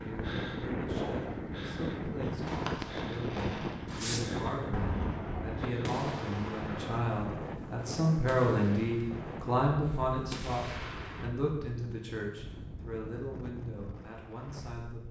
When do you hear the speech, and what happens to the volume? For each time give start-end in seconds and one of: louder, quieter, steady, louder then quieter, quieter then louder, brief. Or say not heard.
0.0-15.0 louder then quieter.